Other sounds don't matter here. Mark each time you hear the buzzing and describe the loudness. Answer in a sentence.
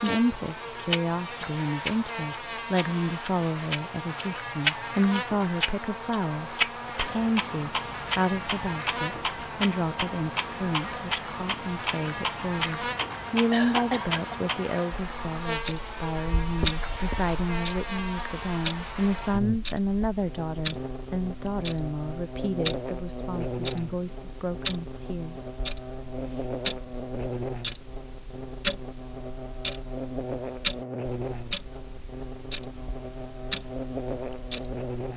The buzzing can be heard from 0.0 to 35.1 s, at a steady volume.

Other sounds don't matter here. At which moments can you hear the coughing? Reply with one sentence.
You can hear the coughing from 13.5 to 14.4 s.